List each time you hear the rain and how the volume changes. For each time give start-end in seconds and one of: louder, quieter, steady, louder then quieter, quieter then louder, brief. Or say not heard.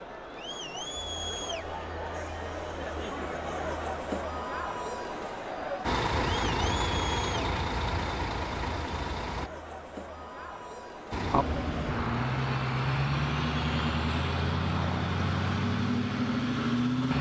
not heard.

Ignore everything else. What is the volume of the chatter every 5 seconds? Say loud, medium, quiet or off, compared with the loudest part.
loud, loud, medium, off.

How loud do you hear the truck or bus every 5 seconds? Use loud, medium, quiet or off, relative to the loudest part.
off, loud, loud, loud.